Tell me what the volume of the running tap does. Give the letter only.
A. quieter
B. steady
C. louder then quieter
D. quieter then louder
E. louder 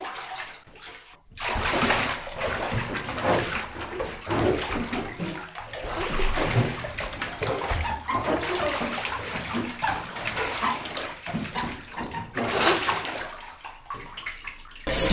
B.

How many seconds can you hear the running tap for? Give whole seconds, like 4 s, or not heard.
15 s.